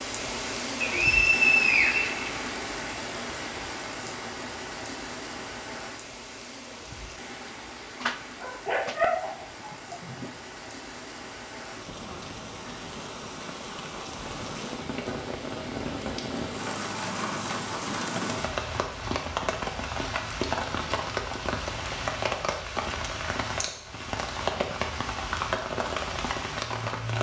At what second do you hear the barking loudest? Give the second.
9 s.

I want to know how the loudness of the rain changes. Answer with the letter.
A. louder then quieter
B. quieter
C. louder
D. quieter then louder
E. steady
D.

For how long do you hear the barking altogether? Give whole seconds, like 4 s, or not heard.
2 s.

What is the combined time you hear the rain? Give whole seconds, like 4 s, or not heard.
27 s.